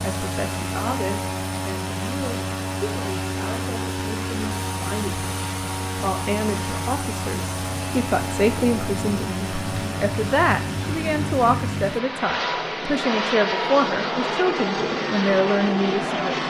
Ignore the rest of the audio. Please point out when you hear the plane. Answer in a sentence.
The plane can be heard from 0.0 to 16.4 s.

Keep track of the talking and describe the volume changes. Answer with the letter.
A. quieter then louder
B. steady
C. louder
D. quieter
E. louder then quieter
C.